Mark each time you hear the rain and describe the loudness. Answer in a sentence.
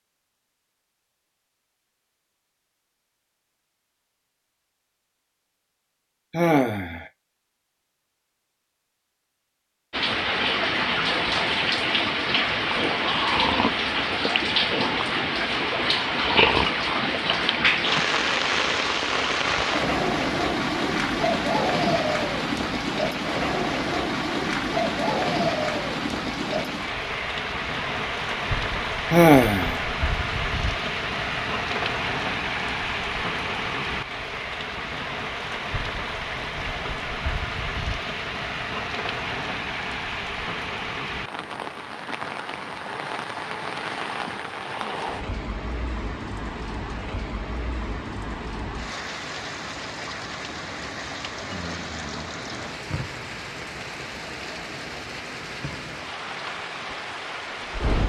The rain can be heard from 9.9 to 58.0 s, getting quieter.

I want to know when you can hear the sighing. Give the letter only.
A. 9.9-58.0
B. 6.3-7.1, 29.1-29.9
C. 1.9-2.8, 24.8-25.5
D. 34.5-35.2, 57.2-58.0
B.